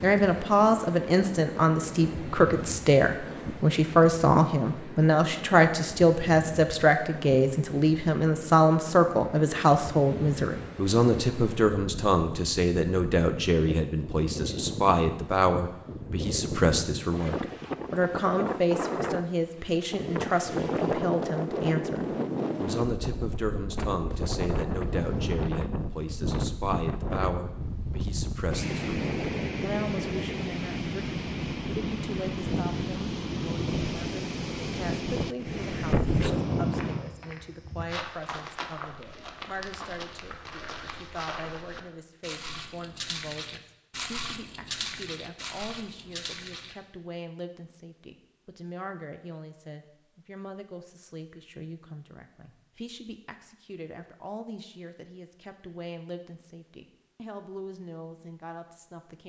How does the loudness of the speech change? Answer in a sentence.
The volume of the speech goes down.